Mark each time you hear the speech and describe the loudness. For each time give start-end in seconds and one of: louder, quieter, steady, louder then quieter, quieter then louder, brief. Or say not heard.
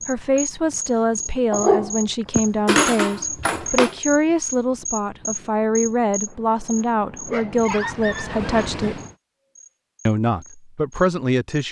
0.1-9.0 steady
10.1-11.6 brief.